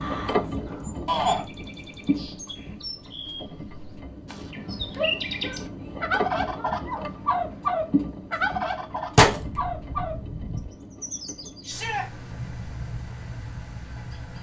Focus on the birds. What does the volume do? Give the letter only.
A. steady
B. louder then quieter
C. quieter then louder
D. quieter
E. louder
B.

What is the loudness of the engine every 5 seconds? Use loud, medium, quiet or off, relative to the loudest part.
loud, loud, medium.